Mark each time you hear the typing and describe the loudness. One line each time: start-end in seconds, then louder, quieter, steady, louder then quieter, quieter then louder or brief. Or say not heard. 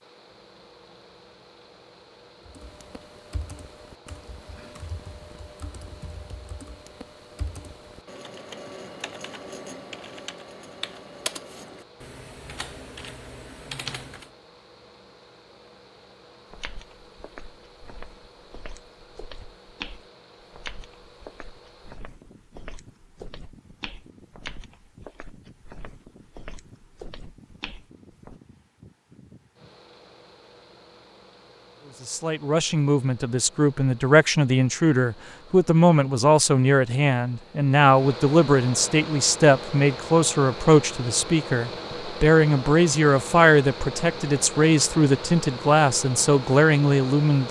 2.5-14.3 louder.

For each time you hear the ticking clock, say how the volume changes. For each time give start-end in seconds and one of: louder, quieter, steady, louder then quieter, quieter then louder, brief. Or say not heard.
not heard.